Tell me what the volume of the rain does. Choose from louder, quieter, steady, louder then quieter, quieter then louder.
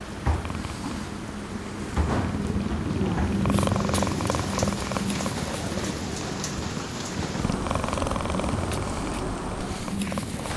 steady.